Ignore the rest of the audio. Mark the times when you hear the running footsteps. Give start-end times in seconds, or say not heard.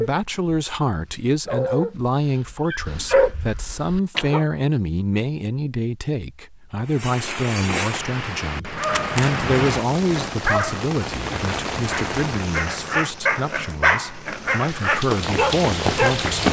14.8-16.4.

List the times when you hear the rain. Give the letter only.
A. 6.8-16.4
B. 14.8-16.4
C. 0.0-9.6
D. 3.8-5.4
A.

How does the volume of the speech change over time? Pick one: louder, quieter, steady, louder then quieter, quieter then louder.
steady.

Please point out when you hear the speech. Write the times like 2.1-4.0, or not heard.
0.0-16.4.